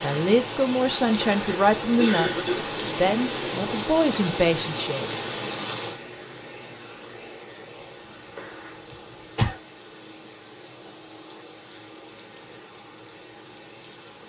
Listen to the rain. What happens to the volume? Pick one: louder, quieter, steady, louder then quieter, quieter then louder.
quieter.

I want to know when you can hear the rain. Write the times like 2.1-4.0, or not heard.
0.0-14.2.